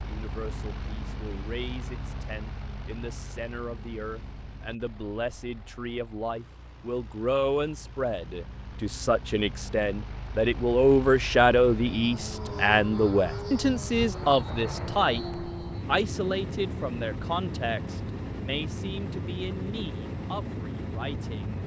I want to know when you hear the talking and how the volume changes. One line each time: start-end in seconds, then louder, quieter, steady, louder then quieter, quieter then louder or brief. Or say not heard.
0.0-21.6 louder then quieter.